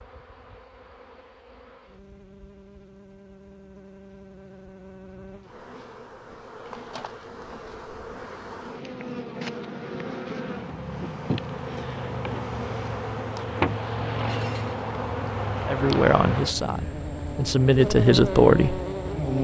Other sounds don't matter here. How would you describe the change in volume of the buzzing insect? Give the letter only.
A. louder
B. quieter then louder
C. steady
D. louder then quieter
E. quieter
A.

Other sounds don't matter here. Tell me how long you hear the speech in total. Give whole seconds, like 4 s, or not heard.
3 s.